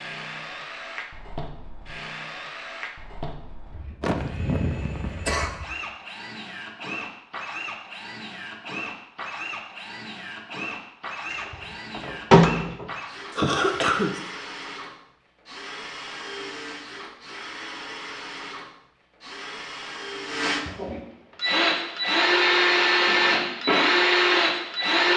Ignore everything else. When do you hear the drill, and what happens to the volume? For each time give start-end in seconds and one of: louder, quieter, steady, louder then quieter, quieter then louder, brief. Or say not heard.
0.0-25.1 louder.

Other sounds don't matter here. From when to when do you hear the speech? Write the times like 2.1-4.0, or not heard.
not heard.